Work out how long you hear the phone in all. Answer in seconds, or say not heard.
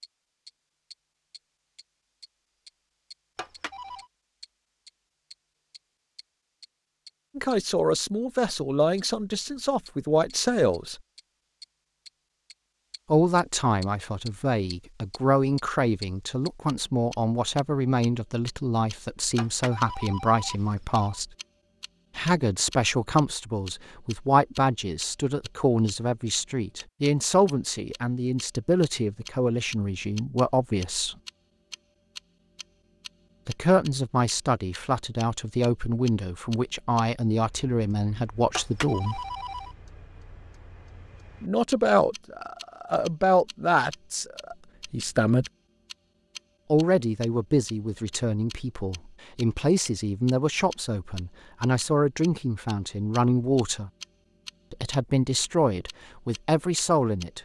4 s.